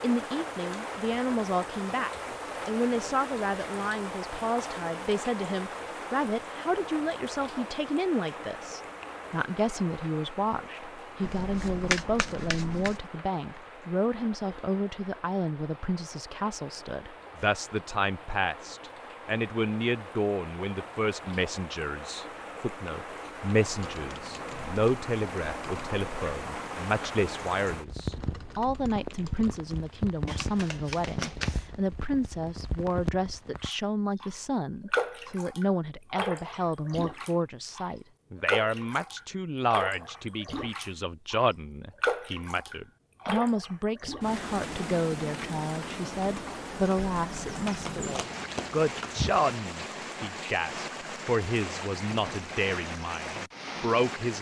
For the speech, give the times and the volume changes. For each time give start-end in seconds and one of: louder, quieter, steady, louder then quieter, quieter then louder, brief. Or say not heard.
0.0-54.3 steady.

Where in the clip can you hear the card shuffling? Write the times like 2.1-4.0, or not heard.
11.2-13.0, 30.2-31.8, 47.6-49.4.